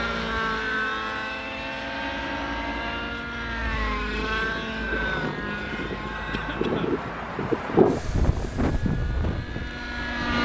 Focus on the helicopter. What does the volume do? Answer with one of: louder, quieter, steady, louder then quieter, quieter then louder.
quieter.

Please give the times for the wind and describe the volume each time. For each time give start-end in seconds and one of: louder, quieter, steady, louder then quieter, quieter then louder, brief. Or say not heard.
4.1-10.4 louder then quieter.